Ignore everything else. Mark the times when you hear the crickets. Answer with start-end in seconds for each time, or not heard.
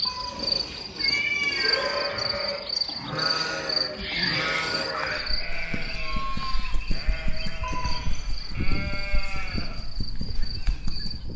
0.0-11.3.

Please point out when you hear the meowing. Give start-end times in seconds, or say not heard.
0.1-2.0, 7.6-8.3.